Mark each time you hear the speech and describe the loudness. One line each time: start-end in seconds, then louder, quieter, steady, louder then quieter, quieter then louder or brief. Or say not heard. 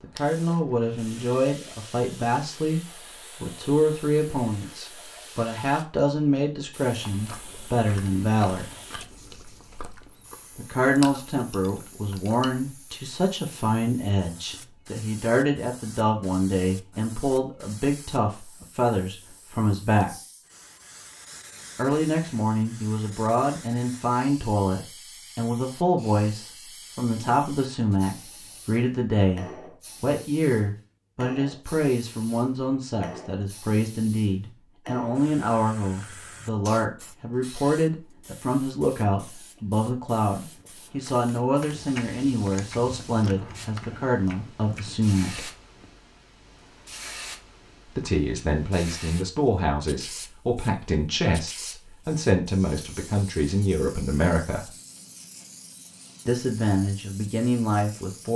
0.0-8.7 steady
10.6-20.1 steady
21.8-45.5 steady
48.0-54.7 steady
56.2-58.3 brief.